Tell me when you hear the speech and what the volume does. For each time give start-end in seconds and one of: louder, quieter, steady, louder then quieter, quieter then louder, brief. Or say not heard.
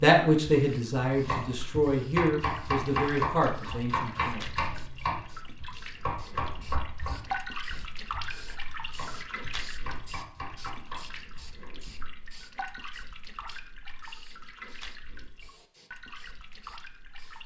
0.0-4.7 quieter.